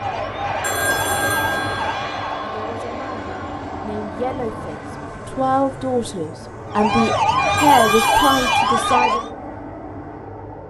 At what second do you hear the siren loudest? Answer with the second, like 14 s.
8 s.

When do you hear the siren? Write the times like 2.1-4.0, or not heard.
0.0-2.5, 6.7-9.3.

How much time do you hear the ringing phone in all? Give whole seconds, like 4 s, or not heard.
3 s.